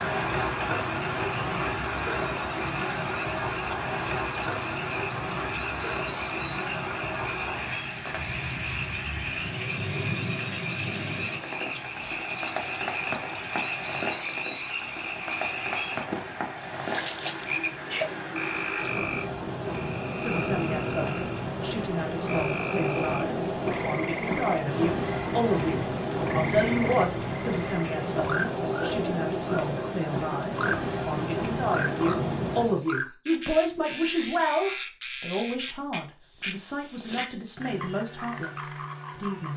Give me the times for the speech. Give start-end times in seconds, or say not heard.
20.2-39.5.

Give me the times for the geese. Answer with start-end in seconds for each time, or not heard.
not heard.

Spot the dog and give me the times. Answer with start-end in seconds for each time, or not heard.
not heard.